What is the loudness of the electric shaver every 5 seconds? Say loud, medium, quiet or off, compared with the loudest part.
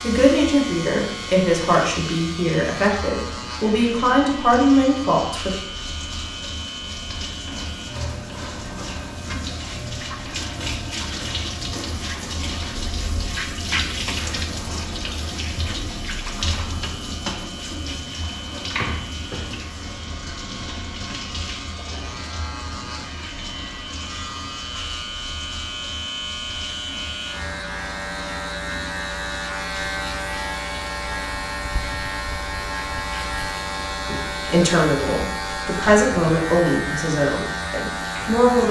medium, medium, quiet, medium, medium, loud, loud, loud.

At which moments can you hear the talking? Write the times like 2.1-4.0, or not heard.
0.0-5.5, 34.0-38.6.